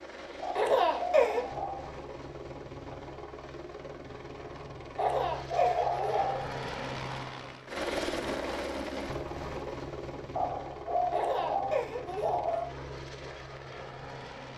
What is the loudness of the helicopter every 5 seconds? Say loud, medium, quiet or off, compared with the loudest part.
medium, loud, medium.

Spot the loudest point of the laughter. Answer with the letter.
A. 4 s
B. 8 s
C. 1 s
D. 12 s
C.